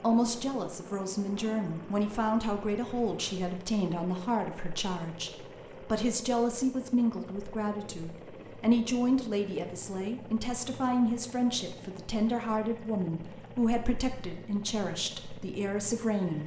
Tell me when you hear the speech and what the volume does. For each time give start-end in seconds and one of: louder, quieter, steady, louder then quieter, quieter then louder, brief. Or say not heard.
0.0-16.4 steady.